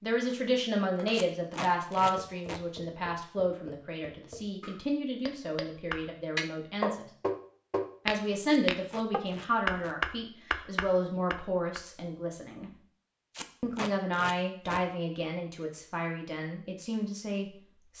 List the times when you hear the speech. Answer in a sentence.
You can hear the speech from 0.0 to 7.0 s, from 8.1 to 12.7 s and from 13.6 to 17.9 s.